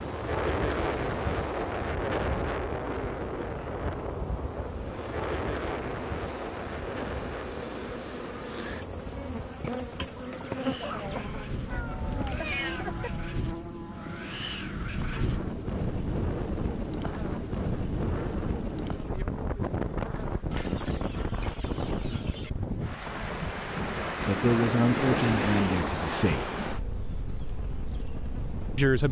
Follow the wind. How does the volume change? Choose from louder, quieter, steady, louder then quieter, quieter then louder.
quieter then louder.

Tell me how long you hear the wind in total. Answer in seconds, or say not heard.
29 s.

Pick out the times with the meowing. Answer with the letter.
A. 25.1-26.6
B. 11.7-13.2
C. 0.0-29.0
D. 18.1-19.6
B.